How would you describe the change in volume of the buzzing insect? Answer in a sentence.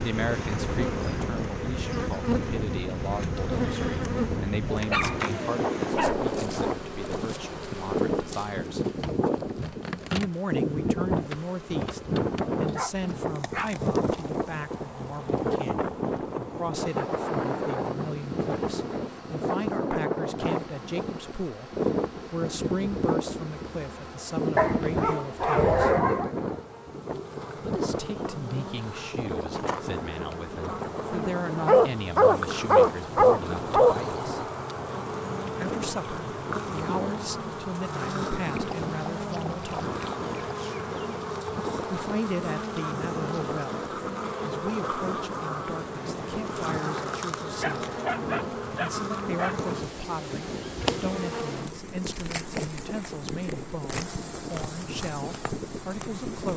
The loudness of the buzzing insect goes down, then up.